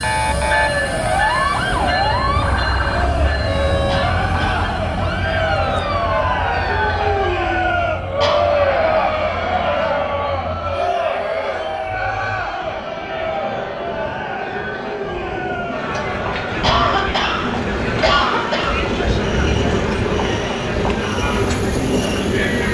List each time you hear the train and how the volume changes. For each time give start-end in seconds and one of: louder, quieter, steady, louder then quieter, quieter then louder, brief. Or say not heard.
0.0-22.7 quieter then louder.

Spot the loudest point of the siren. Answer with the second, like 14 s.
2 s.